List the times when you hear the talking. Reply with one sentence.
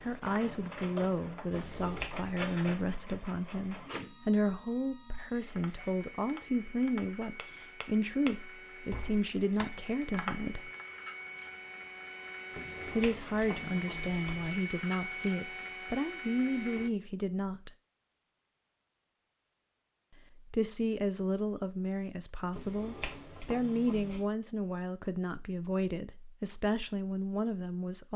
You can hear the talking from 0.0 to 10.7 s, from 12.9 to 17.7 s and from 20.5 to 28.1 s.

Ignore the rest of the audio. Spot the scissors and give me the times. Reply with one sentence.
You can hear the scissors from 1.5 to 2.1 s, from 12.6 to 14.5 s and from 22.6 to 24.2 s.